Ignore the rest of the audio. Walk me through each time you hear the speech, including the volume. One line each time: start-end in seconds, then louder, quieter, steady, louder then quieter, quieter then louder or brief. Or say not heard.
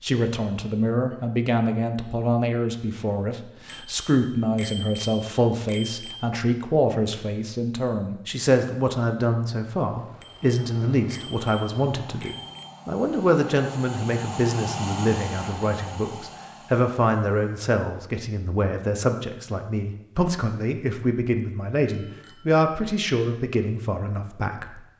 0.0-24.8 steady.